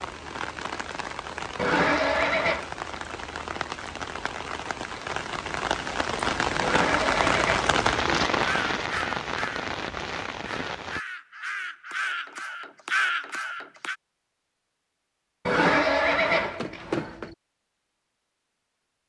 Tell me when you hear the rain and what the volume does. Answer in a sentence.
You can hear the rain from 0.0 to 11.0 s, getting louder then quieter.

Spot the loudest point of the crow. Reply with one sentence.
The volume of the crow peaks at 13 seconds.